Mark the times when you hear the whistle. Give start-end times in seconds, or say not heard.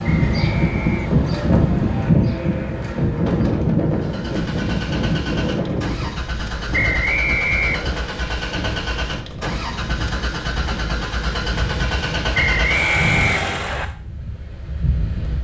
0.0-1.0, 6.7-8.1, 12.3-13.8.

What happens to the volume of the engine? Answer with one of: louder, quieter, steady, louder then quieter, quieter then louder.
louder.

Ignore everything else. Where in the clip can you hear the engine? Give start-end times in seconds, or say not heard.
3.9-13.9.